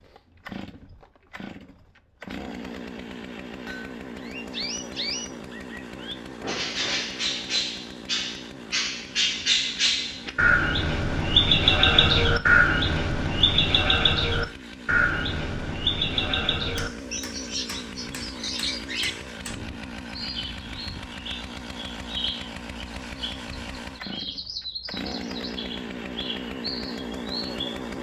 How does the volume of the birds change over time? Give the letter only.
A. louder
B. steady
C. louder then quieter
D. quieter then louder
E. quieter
C.